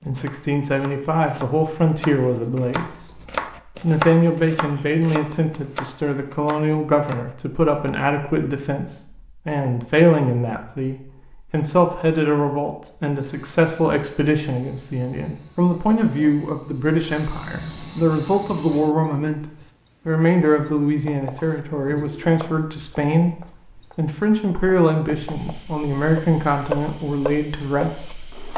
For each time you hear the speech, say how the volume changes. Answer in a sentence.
You can hear the speech from 0.0 to 28.2 s, at a steady volume.